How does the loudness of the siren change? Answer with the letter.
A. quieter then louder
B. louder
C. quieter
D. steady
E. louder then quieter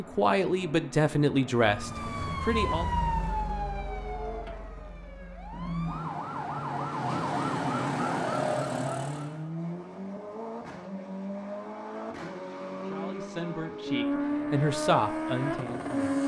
A.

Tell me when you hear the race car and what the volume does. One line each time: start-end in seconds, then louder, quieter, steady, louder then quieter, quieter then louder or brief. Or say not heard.
0.0-16.2 louder.